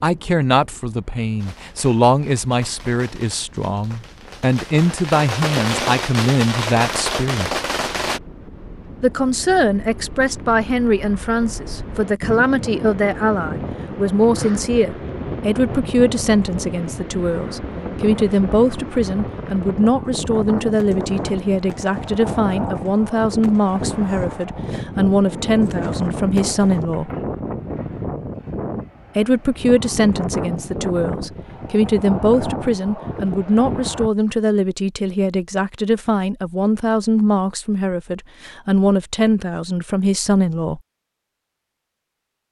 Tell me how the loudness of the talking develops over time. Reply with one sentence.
The loudness of the talking stays about the same.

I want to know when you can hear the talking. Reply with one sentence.
You can hear the talking from 0.0 to 7.5 s, from 9.0 to 27.1 s and from 29.1 to 40.8 s.